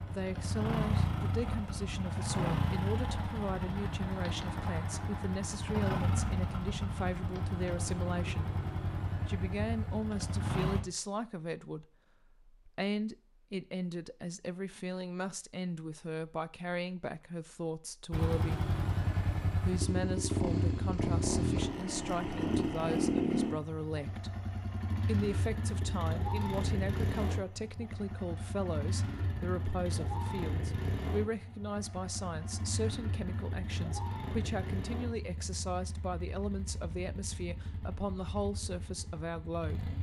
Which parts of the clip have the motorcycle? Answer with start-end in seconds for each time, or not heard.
0.0-10.8, 18.1-39.9.